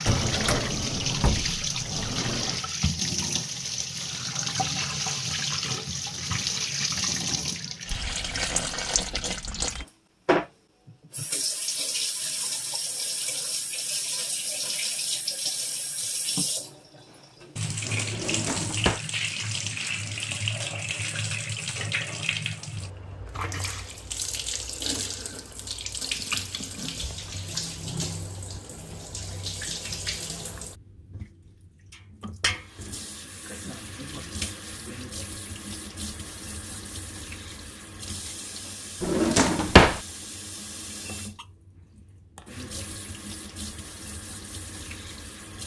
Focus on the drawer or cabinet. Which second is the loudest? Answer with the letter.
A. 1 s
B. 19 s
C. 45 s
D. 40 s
D.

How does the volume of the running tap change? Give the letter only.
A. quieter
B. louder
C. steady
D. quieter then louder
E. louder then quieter
A.